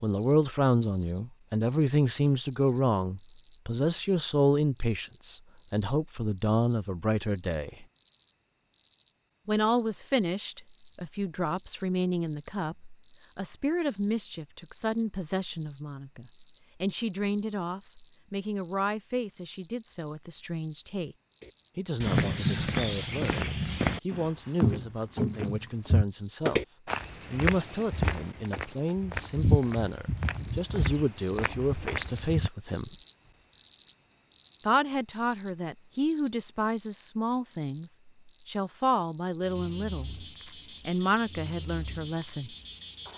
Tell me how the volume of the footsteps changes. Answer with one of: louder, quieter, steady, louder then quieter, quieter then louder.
quieter.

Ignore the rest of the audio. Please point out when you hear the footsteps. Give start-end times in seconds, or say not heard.
21.4-32.5.